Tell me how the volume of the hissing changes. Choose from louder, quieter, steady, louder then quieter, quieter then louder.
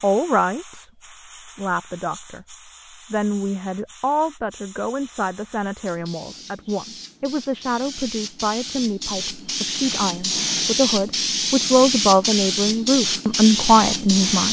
louder.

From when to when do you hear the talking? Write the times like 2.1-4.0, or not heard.
0.0-0.8, 1.6-14.4.